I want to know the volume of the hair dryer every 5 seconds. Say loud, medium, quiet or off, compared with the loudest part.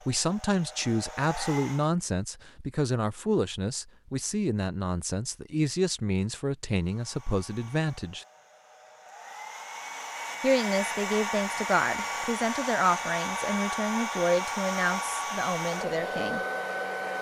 medium, quiet, loud, loud.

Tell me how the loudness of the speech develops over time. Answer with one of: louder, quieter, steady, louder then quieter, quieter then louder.
steady.